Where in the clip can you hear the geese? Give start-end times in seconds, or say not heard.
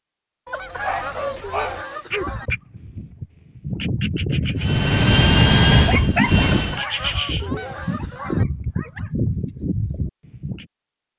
0.5-2.5, 6.4-8.4.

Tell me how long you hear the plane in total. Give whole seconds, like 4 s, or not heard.
2 s.